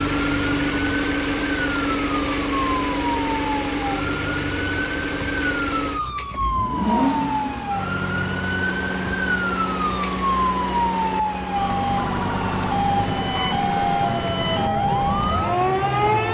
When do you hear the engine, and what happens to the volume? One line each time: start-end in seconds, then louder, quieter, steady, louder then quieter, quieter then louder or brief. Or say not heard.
0.0-16.2 quieter.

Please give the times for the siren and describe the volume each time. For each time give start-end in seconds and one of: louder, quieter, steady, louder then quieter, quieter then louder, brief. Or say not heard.
0.0-16.3 louder.